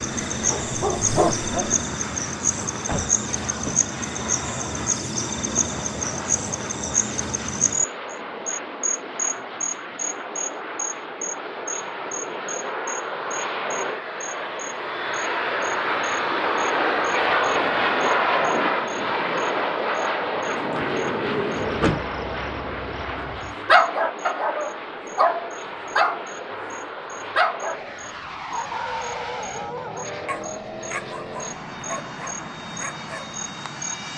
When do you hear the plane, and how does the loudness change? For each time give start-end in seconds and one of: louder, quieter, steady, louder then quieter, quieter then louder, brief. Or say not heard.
0.0-34.1 louder then quieter.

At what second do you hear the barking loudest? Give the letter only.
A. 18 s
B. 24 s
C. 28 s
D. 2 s
B.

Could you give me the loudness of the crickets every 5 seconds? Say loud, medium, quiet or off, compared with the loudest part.
loud, loud, medium, quiet, quiet, quiet, medium.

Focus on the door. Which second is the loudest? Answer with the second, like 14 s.
22 s.